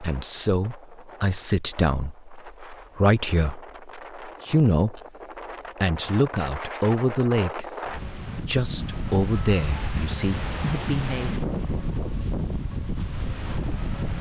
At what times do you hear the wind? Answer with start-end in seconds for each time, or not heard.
0.0-14.1.